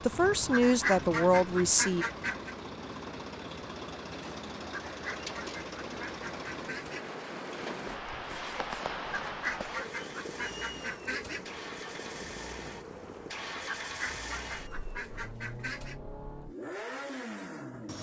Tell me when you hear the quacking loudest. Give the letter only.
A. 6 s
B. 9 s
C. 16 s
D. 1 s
D.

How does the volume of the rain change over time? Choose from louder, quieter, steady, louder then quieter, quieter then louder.
louder then quieter.